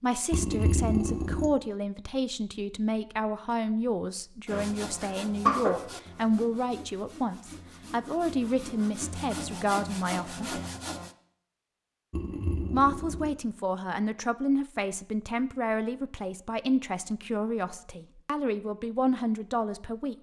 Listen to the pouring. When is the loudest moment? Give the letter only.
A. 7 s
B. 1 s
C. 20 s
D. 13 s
B.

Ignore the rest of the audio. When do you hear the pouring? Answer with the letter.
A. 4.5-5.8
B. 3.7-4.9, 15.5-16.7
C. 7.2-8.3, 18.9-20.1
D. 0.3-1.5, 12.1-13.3
D.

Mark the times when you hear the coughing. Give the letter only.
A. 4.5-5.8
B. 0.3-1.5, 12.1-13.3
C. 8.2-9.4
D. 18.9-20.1
A.